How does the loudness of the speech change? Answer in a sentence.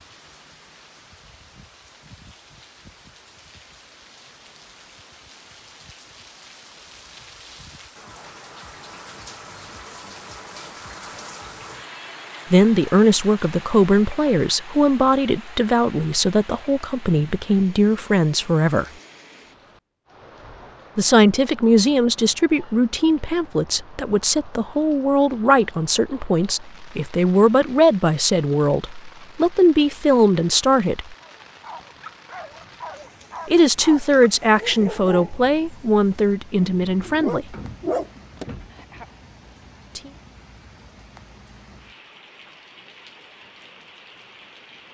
The loudness of the speech stays about the same.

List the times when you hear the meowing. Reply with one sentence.
The meowing can't be heard in this clip.